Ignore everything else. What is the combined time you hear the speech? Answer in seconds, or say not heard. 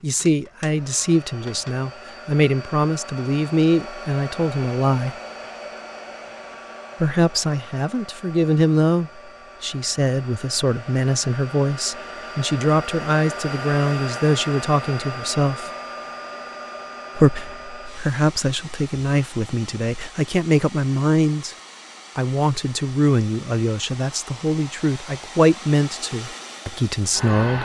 24 s.